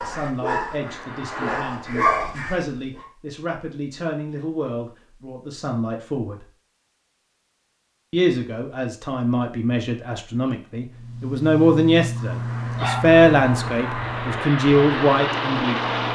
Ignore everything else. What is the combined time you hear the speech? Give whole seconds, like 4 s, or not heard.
14 s.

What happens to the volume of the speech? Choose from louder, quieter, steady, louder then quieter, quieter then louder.
louder.